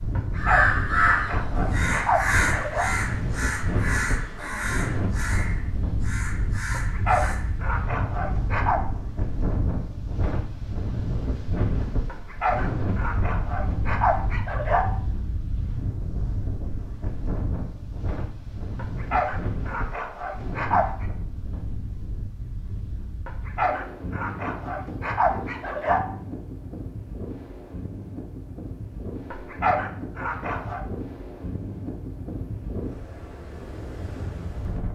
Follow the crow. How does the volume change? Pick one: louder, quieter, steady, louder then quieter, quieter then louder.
quieter.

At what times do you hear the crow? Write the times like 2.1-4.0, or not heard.
0.3-7.6.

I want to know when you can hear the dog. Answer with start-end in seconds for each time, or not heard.
0.1-2.9, 6.7-8.8, 12.1-14.8, 18.8-21.1, 23.2-26.0, 29.3-30.8.